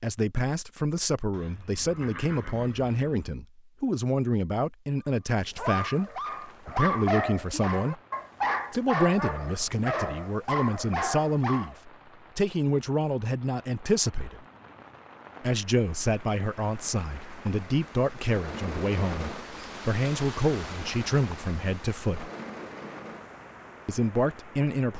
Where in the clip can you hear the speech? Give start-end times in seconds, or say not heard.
0.0-8.0, 8.7-14.4, 15.4-22.3, 23.9-24.9.